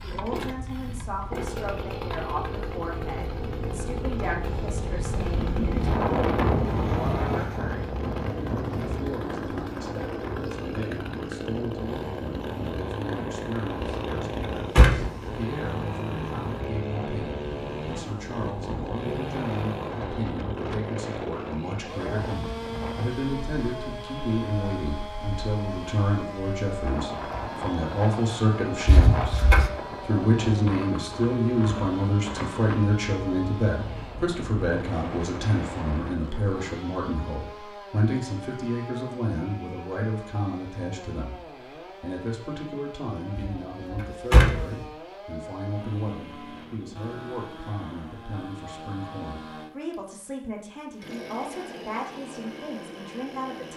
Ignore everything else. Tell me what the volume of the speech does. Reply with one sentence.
The volume of the speech goes up, then down.